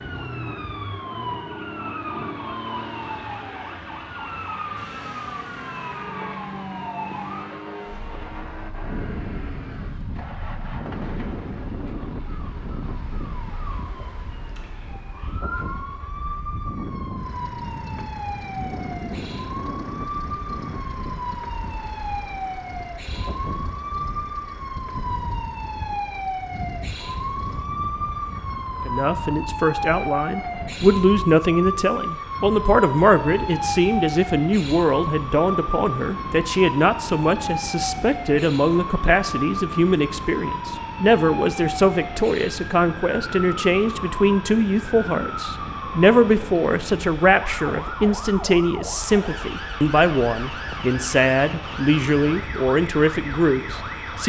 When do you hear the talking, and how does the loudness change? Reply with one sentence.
The talking can be heard from 28.9 to 54.2 s, at a steady volume.